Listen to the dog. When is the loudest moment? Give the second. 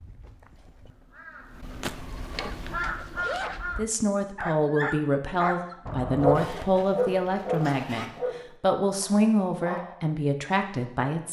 6 s.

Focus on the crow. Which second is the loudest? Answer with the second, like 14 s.
3 s.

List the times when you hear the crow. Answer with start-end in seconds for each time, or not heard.
0.0-3.9.